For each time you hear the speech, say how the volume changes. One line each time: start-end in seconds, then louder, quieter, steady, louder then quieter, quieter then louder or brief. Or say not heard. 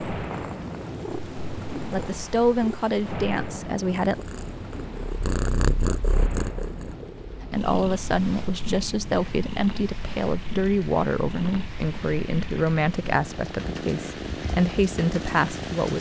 1.9-4.2 brief
7.4-15.9 steady.